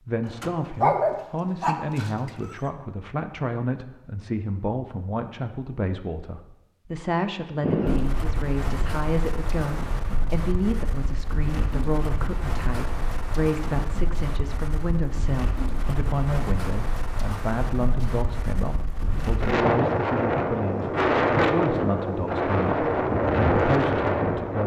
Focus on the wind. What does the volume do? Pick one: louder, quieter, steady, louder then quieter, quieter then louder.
louder.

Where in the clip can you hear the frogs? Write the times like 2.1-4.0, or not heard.
not heard.